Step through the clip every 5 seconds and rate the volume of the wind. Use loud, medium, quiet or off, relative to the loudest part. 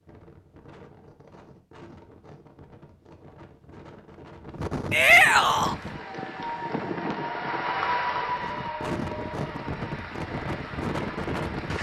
medium, loud, loud.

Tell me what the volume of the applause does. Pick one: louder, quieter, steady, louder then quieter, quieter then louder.
louder then quieter.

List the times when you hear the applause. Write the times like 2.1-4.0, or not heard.
5.5-11.7.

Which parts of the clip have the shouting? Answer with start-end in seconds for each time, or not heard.
4.9-5.8.